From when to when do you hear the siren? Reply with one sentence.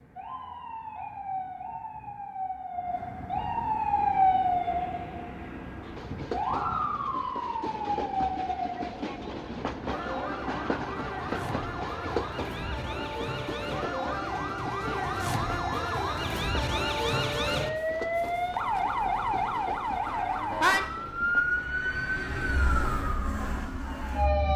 The siren can be heard from 0.0 to 24.5 s.